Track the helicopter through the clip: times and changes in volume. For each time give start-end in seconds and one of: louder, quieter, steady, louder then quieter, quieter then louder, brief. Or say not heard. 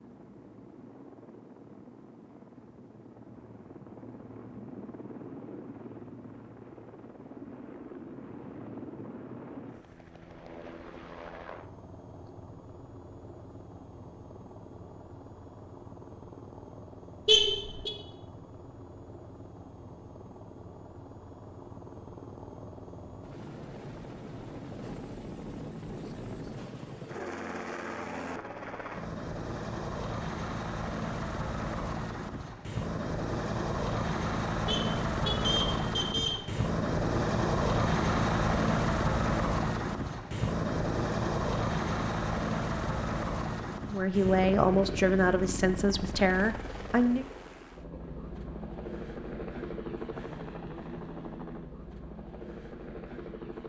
0.0-53.6 louder then quieter.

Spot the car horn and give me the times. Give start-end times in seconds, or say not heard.
17.2-17.9, 34.6-36.4.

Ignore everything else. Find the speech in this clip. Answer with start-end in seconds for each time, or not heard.
43.9-47.2.